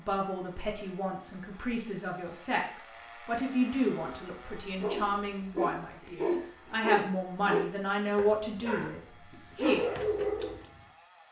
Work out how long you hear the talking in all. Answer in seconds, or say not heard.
10 s.